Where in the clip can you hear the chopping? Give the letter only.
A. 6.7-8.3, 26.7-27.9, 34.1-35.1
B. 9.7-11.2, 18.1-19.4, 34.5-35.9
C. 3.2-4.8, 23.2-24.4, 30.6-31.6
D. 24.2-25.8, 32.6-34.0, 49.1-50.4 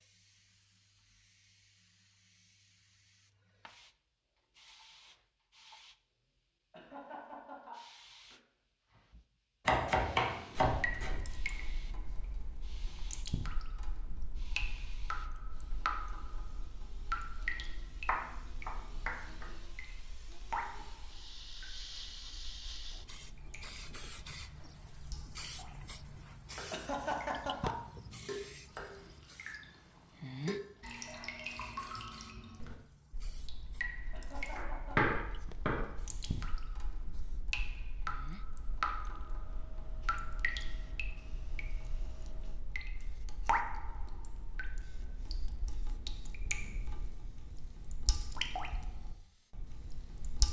B.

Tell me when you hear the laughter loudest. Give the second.
27 s.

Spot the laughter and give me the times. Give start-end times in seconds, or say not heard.
6.7-8.3, 26.7-27.9, 34.1-35.1.